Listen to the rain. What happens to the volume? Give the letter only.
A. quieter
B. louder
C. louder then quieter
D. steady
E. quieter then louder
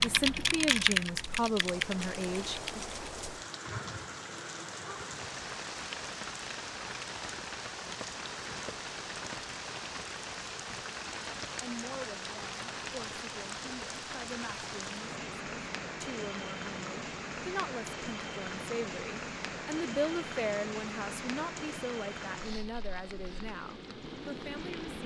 D.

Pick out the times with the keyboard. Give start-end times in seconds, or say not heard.
0.0-3.0.